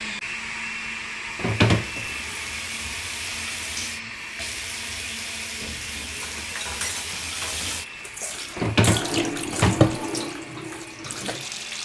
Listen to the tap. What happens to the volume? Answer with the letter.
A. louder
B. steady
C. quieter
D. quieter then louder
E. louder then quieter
A.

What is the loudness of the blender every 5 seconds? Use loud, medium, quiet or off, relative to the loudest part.
loud, medium, medium.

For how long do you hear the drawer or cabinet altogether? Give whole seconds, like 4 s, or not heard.
2 s.